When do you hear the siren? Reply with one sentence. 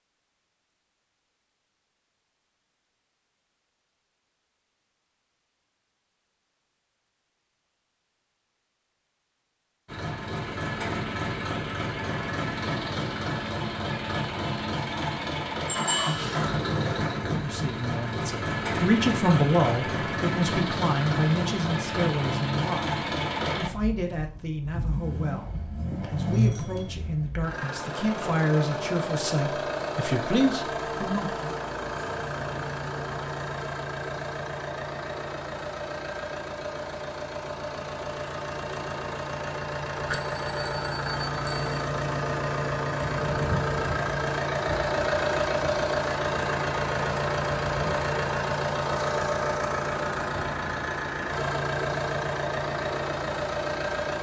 The siren can't be heard in this clip.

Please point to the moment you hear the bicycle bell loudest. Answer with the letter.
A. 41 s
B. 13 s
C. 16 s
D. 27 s
C.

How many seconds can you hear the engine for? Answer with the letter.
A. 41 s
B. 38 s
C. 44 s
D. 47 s
C.